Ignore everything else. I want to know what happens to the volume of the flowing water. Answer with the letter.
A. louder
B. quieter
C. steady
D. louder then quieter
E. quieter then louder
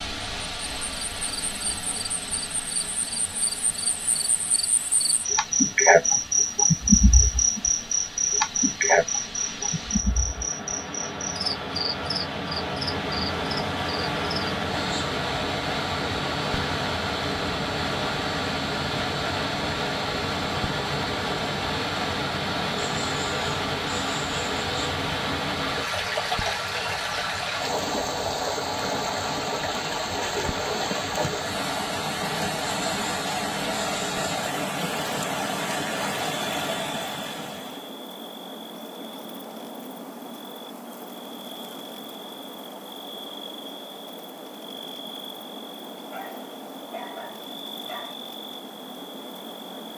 A.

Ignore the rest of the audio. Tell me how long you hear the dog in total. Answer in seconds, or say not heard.
2 s.